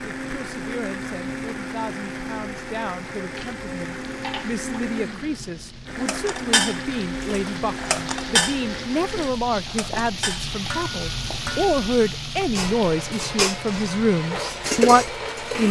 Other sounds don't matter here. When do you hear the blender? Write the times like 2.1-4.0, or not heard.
0.0-9.3, 12.6-15.6.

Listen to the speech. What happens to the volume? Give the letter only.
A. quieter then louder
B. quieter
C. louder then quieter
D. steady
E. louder
E.